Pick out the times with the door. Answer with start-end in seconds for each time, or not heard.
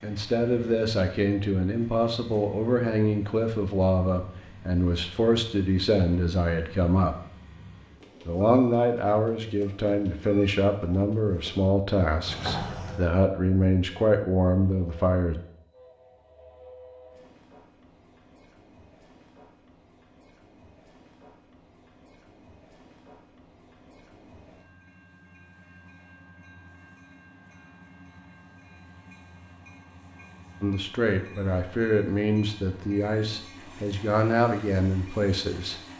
12.2-13.1.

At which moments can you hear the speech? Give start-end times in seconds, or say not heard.
0.0-7.2, 8.2-15.3, 30.6-35.8.